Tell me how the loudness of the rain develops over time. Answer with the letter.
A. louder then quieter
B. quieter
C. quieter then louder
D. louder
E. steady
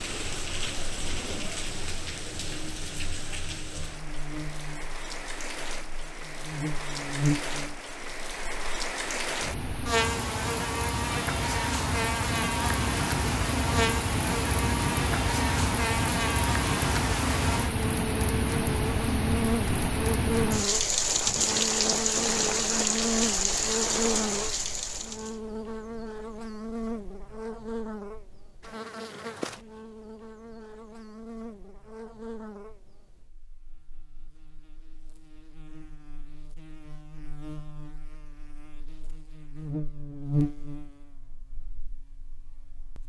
D.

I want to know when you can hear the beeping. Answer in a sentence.
You can't hear the beeping here.